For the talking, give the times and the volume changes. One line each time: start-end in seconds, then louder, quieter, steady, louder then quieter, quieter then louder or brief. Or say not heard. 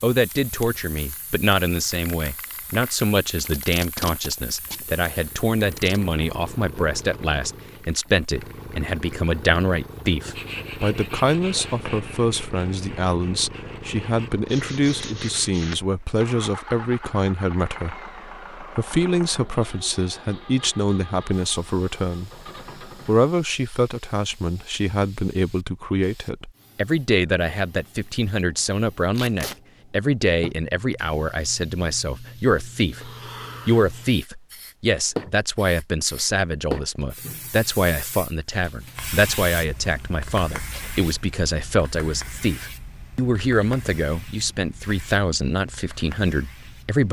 0.0-47.0 steady.